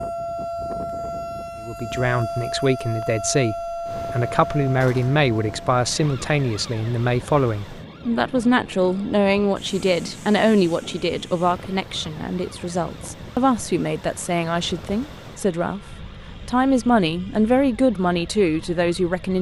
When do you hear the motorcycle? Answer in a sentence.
You can't hear the motorcycle here.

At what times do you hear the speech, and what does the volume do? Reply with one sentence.
The speech can be heard from 1.6 to 15.8 s, at a steady volume; and briefly from 16.4 to 19.3 s.